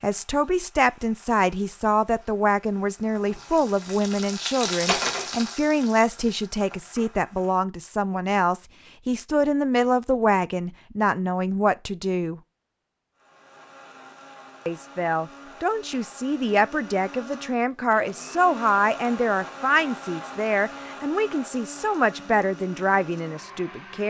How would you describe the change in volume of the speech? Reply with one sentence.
The volume of the speech stays about the same.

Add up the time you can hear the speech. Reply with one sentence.
You can hear the speech for 22 seconds altogether.